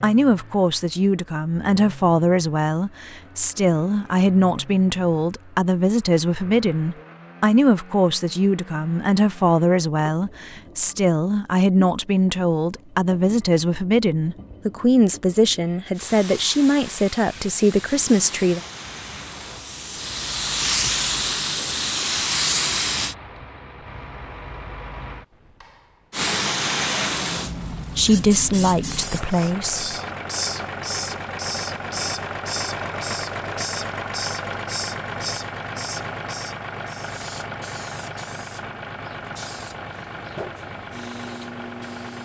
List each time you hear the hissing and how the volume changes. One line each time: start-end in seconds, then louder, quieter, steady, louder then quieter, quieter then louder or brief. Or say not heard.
15.9-23.1 louder
26.1-42.2 quieter.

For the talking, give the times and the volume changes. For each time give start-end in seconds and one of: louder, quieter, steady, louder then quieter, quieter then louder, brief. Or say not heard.
0.0-18.6 steady
27.9-29.9 brief.